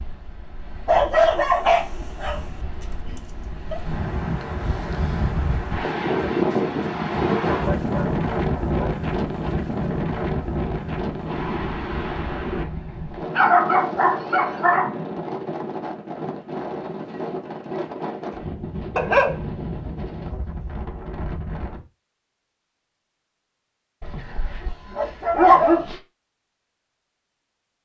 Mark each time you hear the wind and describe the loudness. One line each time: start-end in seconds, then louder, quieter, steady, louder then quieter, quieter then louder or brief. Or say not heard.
0.0-21.9 louder then quieter.